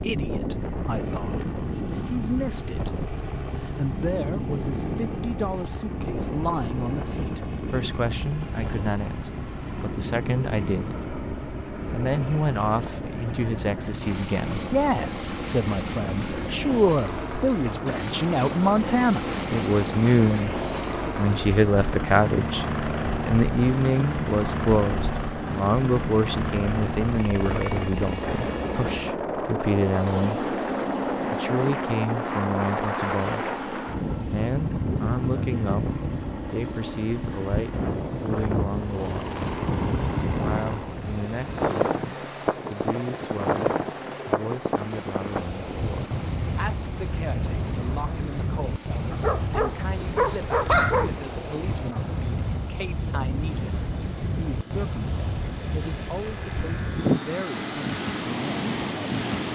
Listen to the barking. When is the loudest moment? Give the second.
51 s.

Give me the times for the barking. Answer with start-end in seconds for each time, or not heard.
49.1-51.1.